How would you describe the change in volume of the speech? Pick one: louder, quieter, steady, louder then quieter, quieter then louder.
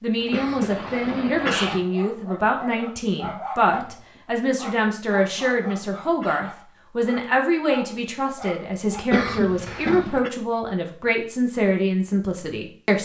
steady.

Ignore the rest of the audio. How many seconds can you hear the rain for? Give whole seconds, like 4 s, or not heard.
not heard.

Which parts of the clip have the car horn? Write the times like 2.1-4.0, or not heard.
not heard.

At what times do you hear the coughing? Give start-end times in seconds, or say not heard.
0.3-1.8, 5.0-6.5, 9.1-10.3.